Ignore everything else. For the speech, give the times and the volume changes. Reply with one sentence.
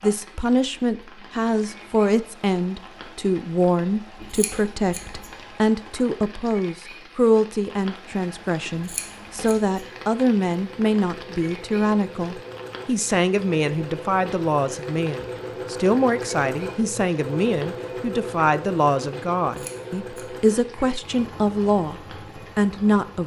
You can hear the speech from 0.0 to 23.2 s, at a steady volume.